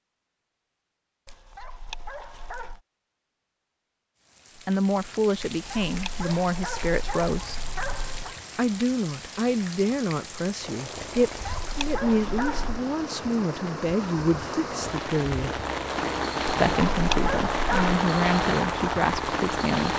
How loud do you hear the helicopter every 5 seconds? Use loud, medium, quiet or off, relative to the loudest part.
off, off, medium, loud.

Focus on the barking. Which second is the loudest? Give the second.
17 s.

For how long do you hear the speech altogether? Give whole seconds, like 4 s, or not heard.
13 s.